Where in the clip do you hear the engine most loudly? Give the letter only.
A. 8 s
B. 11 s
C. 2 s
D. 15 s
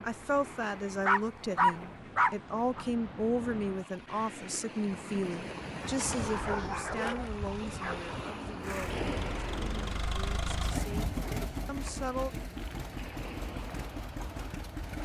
B.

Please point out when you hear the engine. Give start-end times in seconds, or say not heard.
8.6-15.0.